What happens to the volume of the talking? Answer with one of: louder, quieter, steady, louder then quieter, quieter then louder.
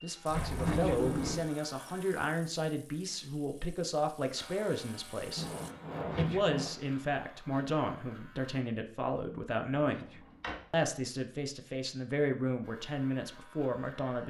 steady.